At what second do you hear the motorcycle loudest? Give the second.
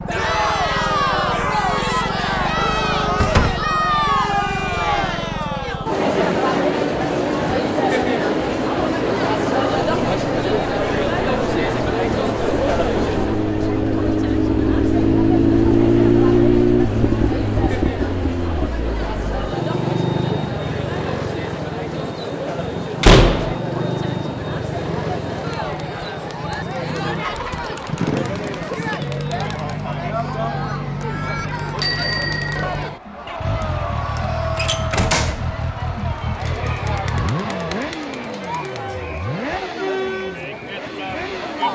16 s.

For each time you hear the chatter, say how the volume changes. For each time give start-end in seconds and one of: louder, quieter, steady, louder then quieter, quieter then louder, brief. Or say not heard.
0.1-41.6 quieter.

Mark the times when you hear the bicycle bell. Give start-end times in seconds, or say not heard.
31.8-32.6.